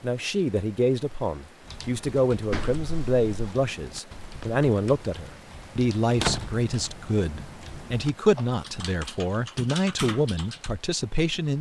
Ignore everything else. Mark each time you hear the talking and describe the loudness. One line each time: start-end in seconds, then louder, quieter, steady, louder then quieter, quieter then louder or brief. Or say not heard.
0.0-11.5 steady.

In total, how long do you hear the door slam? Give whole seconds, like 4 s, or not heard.
2 s.